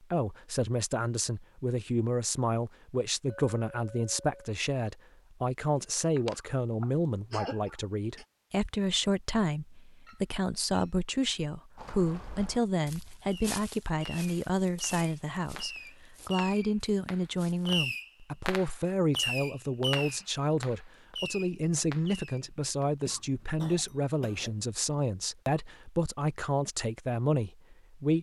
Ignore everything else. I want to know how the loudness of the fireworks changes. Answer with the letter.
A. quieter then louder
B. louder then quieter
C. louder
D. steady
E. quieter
B.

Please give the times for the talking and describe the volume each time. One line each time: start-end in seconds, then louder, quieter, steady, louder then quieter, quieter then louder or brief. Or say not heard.
0.0-28.1 steady.